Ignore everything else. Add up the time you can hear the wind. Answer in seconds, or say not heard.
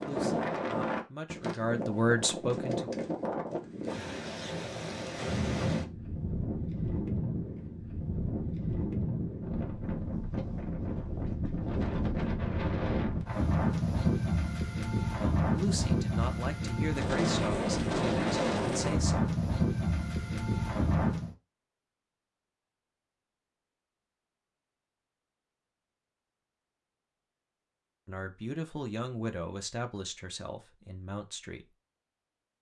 21 s.